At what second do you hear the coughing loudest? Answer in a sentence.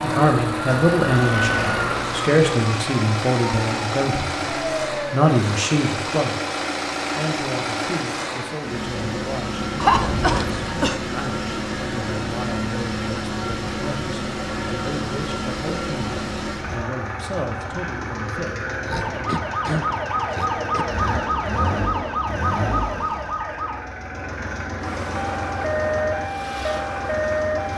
The volume of the coughing peaks at 10 seconds.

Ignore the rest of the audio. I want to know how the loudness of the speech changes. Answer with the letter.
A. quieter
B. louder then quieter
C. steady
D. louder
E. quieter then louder
A.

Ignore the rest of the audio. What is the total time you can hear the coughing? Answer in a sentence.
The coughing can be heard for 3 seconds in total.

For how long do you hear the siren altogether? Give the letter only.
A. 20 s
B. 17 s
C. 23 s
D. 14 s
D.